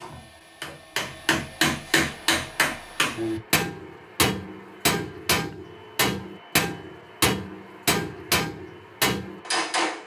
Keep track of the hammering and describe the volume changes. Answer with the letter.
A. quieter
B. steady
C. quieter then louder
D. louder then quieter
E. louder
B.